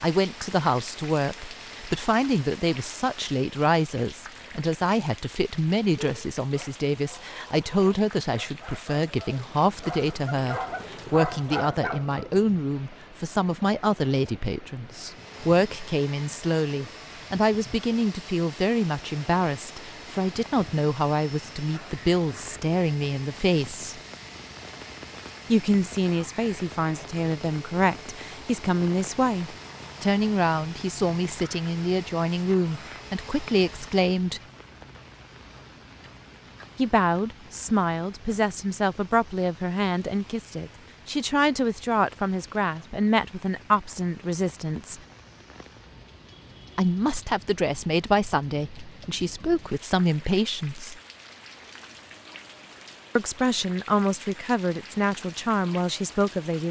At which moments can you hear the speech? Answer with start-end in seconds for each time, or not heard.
0.0-24.0, 25.5-34.4, 36.8-45.0, 46.8-51.0, 53.1-56.6.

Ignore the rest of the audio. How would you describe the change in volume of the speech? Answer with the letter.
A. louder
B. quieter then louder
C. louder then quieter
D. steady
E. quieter
D.